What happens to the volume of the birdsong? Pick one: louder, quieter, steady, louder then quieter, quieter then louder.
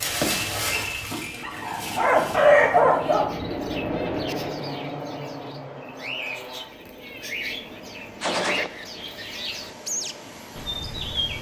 louder.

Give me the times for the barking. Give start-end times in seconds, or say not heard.
0.0-3.2.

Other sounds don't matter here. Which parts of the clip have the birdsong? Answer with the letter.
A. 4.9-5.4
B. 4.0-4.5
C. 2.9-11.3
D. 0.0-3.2
C.